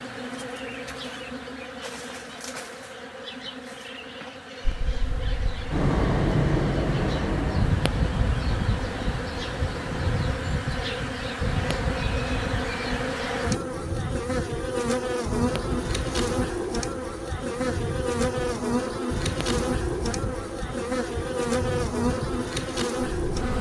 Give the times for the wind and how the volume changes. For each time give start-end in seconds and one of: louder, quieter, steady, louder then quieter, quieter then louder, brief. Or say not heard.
4.7-23.5 quieter.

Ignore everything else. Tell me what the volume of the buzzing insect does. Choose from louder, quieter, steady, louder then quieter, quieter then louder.
louder.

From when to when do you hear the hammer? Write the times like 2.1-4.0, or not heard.
not heard.